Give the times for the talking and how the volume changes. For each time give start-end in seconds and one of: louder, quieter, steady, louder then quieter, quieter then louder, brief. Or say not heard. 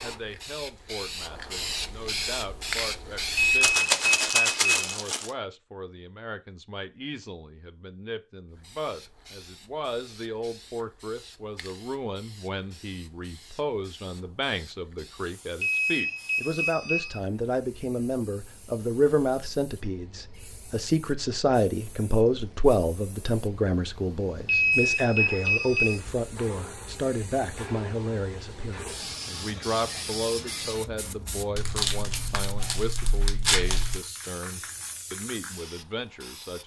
0.0-36.6 louder then quieter.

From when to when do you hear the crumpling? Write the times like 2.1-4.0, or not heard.
3.6-5.3, 31.6-34.0.